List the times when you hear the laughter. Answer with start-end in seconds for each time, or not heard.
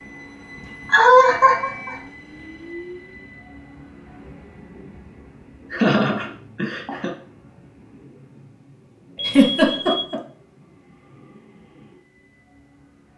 0.9-1.9, 5.7-7.1, 9.2-10.2.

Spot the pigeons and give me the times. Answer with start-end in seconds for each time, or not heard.
not heard.